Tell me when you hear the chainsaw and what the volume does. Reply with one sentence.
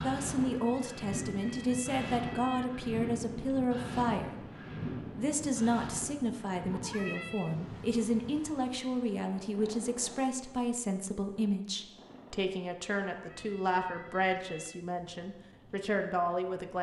You can't hear the chainsaw here.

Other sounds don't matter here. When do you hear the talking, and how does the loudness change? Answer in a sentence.
You can hear the talking from 0.0 to 16.7 s, at a steady volume.